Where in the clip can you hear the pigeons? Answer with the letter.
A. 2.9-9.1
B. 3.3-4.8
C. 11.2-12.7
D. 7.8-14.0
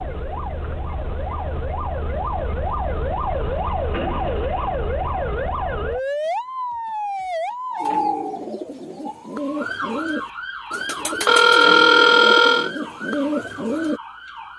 D.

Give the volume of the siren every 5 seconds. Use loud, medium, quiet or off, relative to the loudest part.
loud, loud, medium.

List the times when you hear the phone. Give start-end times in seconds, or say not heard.
11.2-12.7.